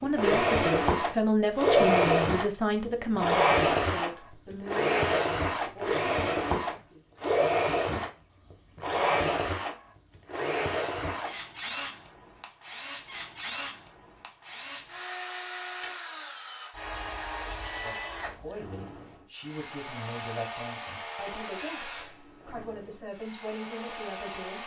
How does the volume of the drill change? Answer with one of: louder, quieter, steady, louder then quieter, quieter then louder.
quieter.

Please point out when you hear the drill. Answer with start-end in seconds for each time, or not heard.
0.0-24.6.